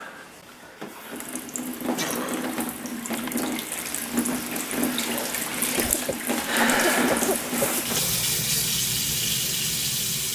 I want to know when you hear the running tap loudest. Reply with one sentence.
The loudest moment of the running tap is at 7 seconds.